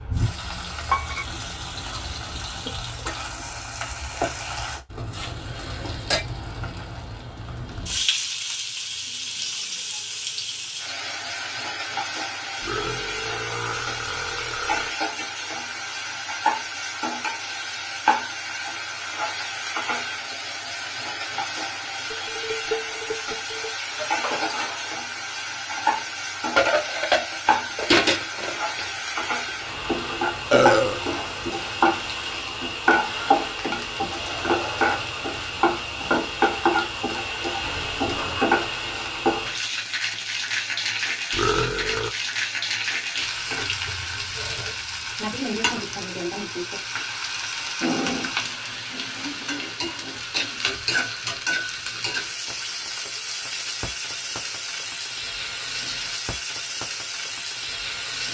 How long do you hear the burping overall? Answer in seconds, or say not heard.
4 s.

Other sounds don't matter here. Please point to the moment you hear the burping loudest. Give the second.
31 s.